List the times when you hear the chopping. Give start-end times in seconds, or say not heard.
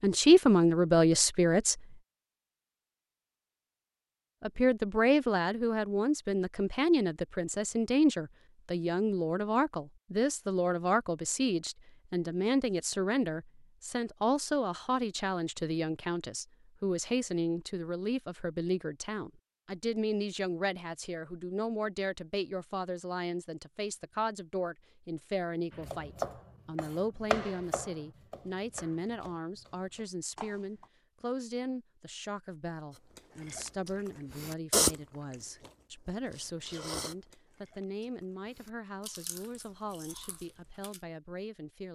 25.7-30.9.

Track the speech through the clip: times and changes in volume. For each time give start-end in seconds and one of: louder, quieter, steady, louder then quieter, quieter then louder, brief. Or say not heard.
0.0-1.8 brief
4.4-41.9 quieter.